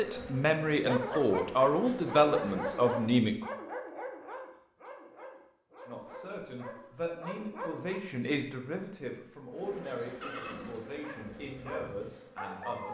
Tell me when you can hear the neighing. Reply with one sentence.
The neighing can be heard from 10.2 to 10.8 s.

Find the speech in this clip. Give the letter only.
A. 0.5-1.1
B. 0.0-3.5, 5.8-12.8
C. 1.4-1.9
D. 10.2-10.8
B.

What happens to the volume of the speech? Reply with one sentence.
The loudness of the speech goes down.